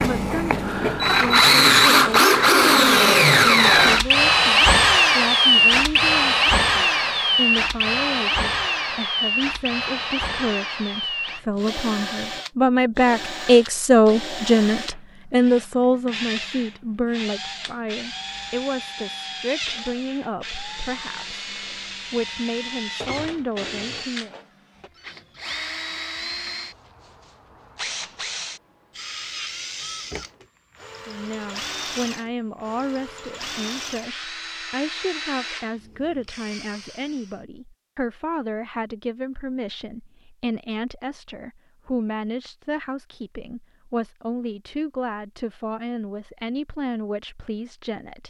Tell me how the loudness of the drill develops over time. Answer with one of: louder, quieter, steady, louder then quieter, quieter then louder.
quieter.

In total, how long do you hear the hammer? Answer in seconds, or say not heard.
not heard.